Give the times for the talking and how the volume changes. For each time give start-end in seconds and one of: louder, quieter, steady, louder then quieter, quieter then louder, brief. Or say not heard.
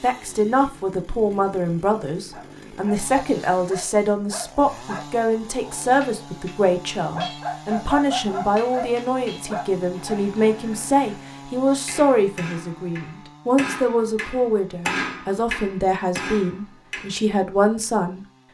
0.0-18.2 steady.